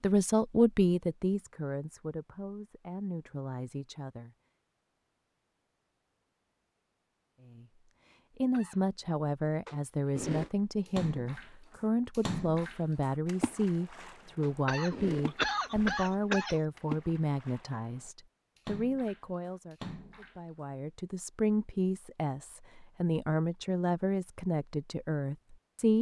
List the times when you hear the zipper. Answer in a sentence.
The zipper can be heard from 9.7 to 10.6 s and from 14.4 to 15.9 s.